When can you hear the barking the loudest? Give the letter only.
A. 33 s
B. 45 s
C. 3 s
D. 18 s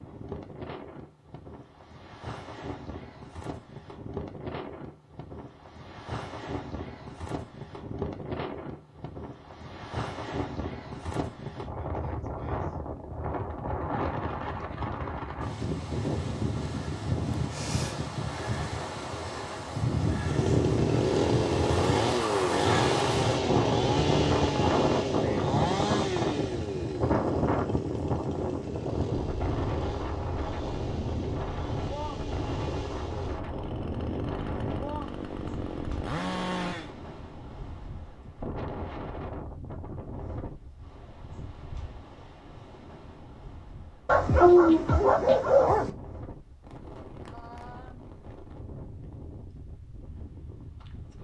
B.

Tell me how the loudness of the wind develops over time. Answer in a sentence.
The volume of the wind goes up, then down.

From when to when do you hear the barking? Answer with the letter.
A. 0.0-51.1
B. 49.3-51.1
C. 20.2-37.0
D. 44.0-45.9
D.